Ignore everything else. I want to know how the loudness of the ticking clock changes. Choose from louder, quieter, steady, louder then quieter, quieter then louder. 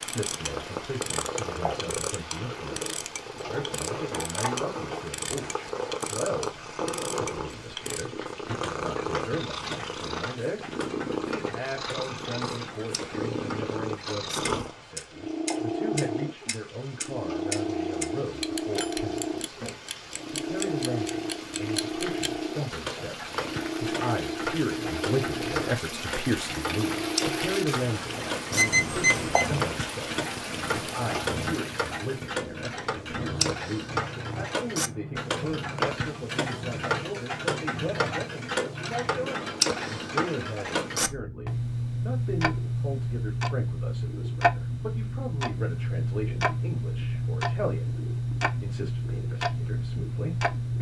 louder.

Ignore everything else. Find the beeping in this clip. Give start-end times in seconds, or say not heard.
28.6-29.4.